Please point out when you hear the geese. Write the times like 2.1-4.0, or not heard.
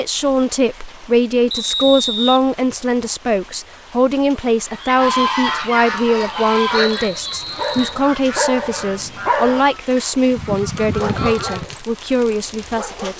4.5-11.8.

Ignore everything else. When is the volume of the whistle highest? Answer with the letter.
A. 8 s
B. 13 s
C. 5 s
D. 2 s
D.